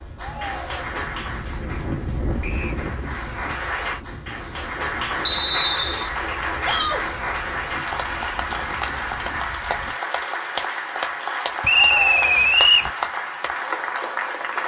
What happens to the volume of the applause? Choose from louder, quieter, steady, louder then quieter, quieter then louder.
louder.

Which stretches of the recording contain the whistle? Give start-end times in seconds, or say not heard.
2.4-2.9, 5.2-6.1, 11.6-12.9.